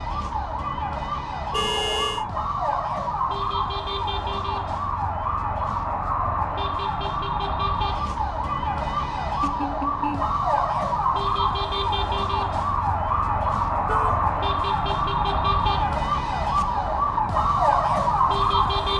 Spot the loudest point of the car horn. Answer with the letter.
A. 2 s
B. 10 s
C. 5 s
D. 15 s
A.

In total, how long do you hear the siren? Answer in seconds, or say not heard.
19 s.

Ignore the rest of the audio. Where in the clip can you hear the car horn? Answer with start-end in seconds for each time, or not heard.
1.5-2.2, 9.4-10.3, 13.8-14.3.